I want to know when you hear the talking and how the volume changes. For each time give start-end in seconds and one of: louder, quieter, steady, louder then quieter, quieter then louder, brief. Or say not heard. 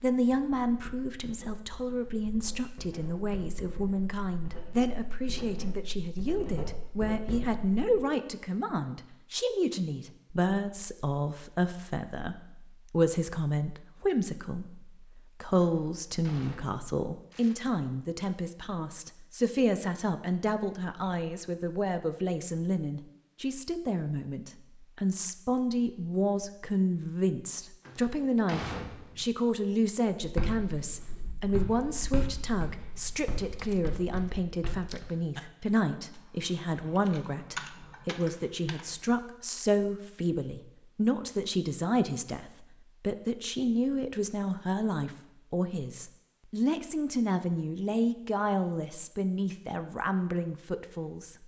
0.0-51.4 steady.